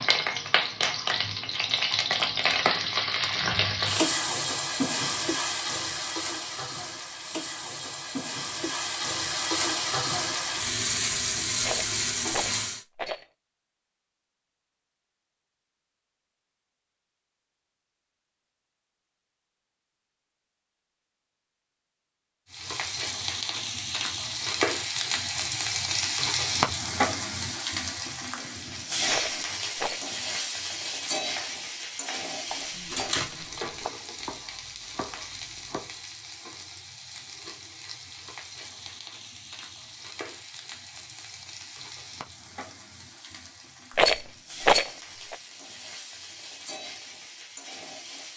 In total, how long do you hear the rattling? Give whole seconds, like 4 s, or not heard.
4 s.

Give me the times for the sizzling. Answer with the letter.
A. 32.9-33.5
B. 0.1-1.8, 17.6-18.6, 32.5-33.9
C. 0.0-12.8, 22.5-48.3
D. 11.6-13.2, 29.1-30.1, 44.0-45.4
C.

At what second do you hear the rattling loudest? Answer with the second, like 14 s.
45 s.